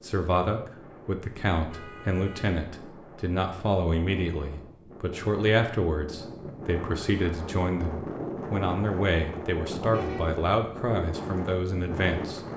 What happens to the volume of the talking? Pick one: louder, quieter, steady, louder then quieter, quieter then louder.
steady.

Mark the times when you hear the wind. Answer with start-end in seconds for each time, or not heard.
0.0-12.5.